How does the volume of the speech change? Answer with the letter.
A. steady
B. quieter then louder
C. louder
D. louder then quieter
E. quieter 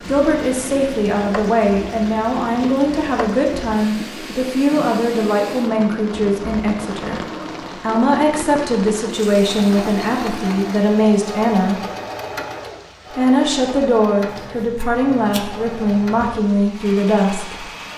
A.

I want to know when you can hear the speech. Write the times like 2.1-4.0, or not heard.
0.1-7.2, 7.8-11.8, 13.1-17.6.